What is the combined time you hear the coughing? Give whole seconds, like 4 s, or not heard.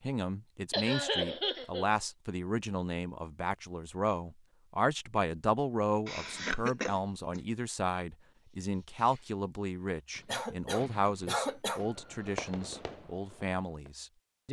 4 s.